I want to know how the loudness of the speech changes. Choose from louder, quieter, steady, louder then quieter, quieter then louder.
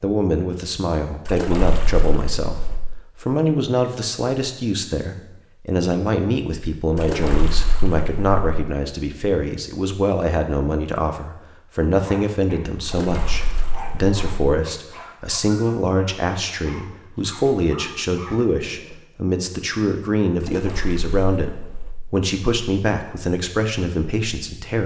steady.